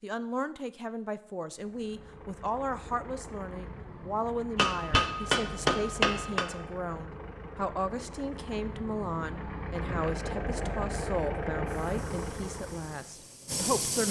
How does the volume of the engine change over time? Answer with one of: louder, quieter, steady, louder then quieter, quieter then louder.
louder.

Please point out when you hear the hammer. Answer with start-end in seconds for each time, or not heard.
4.5-6.5.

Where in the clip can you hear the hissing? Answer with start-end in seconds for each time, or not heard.
11.7-14.0.